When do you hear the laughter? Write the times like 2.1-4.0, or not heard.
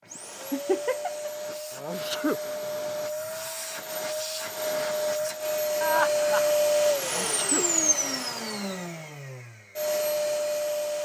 0.1-1.3, 5.8-6.5.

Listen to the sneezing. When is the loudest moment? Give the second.
2 s.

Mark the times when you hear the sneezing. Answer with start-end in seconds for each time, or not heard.
1.7-2.4, 7.0-7.7.